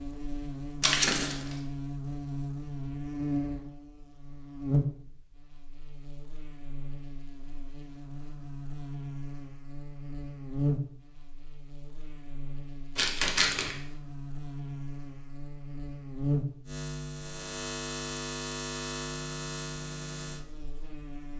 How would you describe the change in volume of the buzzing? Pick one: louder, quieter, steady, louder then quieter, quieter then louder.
steady.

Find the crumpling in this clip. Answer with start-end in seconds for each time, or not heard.
0.8-1.6, 12.9-13.8.